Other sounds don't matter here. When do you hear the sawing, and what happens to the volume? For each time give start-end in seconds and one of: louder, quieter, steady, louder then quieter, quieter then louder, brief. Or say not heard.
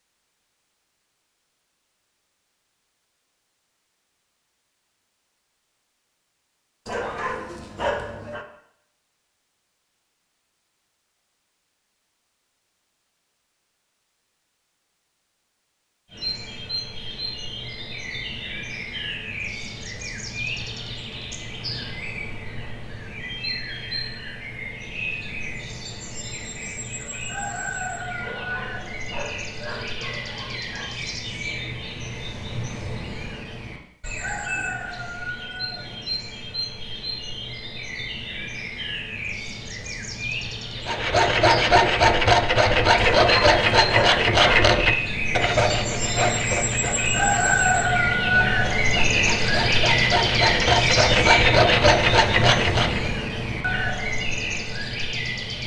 40.9-53.1 quieter then louder.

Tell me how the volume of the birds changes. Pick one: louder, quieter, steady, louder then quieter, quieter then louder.
louder.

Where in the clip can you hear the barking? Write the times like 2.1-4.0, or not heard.
6.8-8.4, 28.1-30.9, 43.0-44.6.